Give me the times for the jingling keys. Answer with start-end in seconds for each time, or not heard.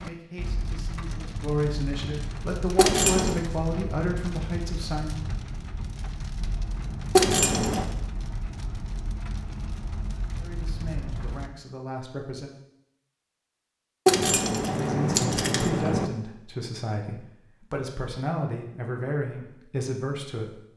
2.8-3.4, 7.2-7.8, 14.1-16.1.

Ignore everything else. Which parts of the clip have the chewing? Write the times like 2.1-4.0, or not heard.
not heard.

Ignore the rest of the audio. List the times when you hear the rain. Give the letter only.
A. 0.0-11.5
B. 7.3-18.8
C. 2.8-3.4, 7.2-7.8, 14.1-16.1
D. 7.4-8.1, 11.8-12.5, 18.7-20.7
A.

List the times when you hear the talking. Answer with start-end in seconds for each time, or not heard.
0.0-5.1, 10.3-12.6, 14.7-20.6.